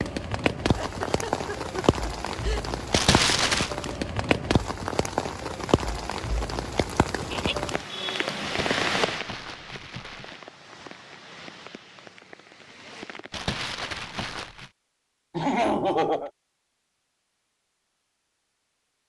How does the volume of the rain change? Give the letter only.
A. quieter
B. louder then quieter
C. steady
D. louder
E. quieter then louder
A.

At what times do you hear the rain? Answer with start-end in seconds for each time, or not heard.
0.0-13.4.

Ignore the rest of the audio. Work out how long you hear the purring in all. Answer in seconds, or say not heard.
not heard.